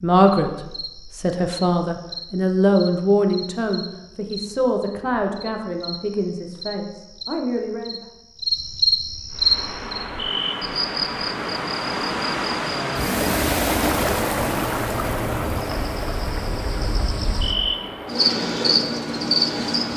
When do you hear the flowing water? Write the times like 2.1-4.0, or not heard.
9.3-19.9.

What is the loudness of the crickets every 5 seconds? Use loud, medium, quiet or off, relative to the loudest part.
quiet, loud, medium, loud.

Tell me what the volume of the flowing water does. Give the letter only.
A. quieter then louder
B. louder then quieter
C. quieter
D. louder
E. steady
B.